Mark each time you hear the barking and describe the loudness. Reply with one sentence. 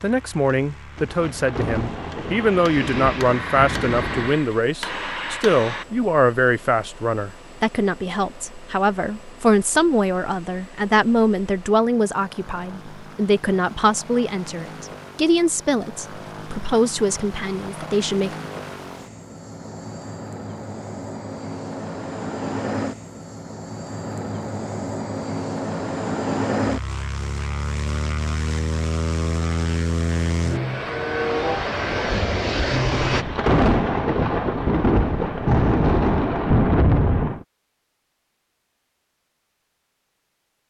The barking can't be heard in this clip.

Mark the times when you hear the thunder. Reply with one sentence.
The thunder can be heard from 0.9 to 4.4 s and from 32.9 to 37.5 s.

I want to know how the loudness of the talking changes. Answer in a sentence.
The volume of the talking stays about the same.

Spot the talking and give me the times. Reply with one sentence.
The talking can be heard from 0.0 to 18.4 s.